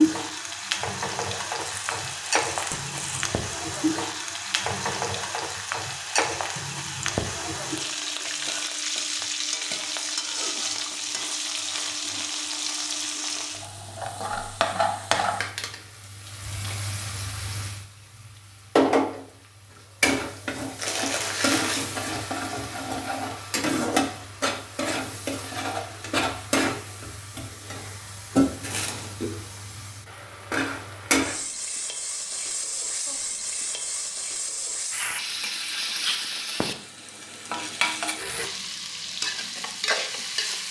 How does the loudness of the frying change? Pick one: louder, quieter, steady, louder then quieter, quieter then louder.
steady.